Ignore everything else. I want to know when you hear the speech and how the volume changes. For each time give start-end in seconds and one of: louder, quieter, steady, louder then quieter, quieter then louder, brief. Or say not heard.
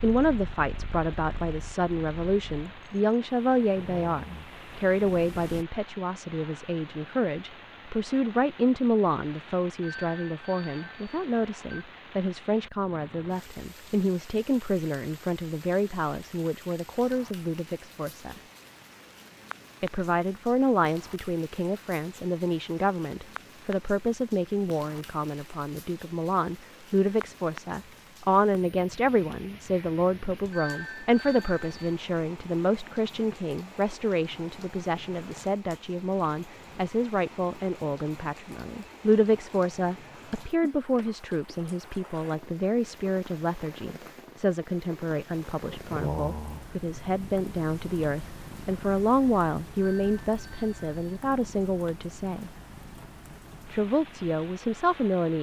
0.0-18.4 steady
19.8-52.5 steady
53.7-55.3 brief.